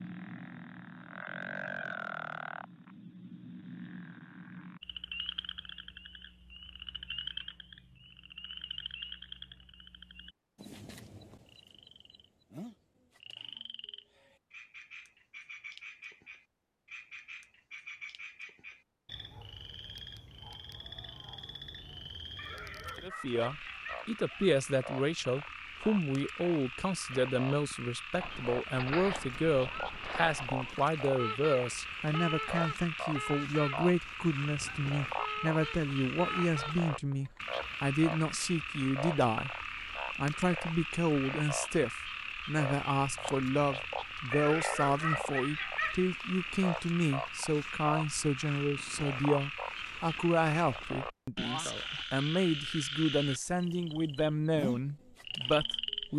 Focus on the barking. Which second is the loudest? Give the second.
45 s.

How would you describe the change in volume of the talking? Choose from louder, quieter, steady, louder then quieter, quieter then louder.
steady.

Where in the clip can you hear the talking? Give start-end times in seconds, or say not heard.
23.0-56.1.